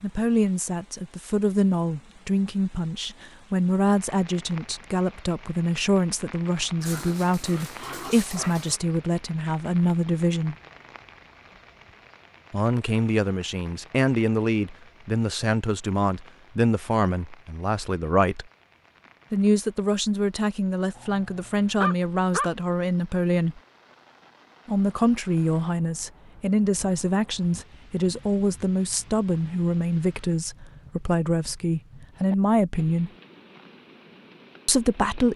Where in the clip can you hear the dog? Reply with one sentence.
The dog can be heard from 6.8 to 8.8 s and from 20.9 to 22.5 s.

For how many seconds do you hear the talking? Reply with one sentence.
The talking can be heard for 30 seconds in total.